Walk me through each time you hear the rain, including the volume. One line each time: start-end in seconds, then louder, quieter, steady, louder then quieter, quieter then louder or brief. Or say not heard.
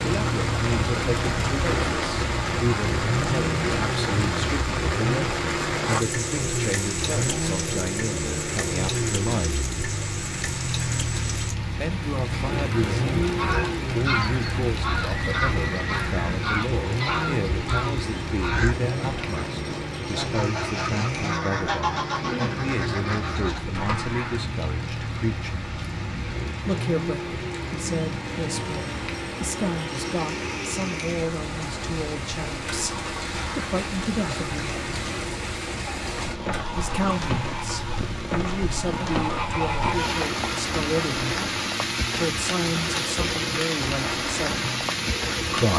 0.0-45.7 quieter then louder.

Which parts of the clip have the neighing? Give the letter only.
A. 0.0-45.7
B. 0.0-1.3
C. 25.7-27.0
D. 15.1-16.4
D.